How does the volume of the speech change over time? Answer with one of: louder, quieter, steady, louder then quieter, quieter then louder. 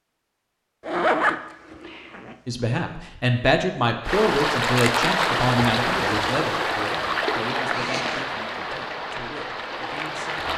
quieter.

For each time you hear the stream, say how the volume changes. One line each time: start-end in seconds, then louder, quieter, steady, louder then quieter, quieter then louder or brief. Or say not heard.
4.0-10.5 quieter.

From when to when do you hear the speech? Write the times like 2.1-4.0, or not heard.
2.5-10.5.